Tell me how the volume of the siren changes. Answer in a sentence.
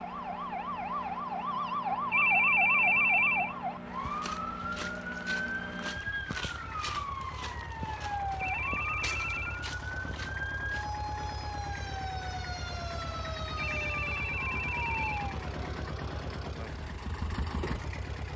The volume of the siren goes down.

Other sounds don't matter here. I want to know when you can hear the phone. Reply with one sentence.
You can hear the phone from 2.1 to 3.5 s, from 8.4 to 9.6 s and from 13.6 to 15.2 s.